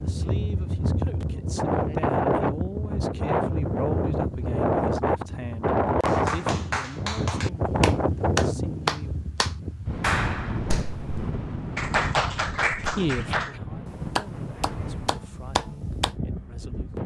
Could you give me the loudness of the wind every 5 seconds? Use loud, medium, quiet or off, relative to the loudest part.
loud, loud, medium, medium.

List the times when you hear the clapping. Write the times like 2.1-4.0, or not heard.
6.0-13.6, 14.2-16.1.